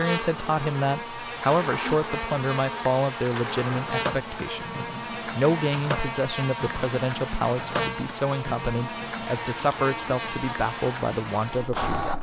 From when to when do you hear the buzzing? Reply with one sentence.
The buzzing can be heard from 0.0 to 11.8 s.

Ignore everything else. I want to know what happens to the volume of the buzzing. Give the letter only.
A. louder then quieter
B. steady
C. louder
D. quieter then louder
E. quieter
B.